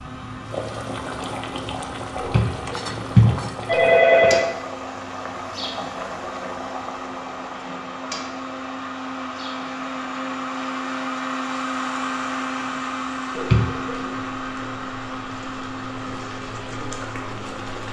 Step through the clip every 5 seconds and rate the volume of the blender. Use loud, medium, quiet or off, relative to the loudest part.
medium, medium, loud, medium.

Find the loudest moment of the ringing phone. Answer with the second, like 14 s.
4 s.